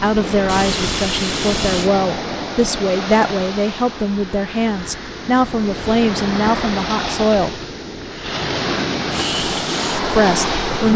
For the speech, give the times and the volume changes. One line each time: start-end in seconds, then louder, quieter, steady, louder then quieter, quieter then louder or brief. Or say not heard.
0.0-7.6 steady
10.1-10.9 brief.